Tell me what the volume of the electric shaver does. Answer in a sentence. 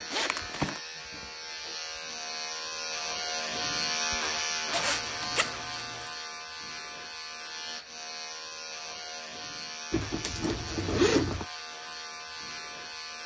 The volume of the electric shaver goes up, then down.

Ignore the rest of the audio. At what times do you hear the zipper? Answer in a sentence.
You can hear the zipper from 0.1 to 0.8 s, from 4.7 to 6.1 s and from 9.9 to 11.4 s.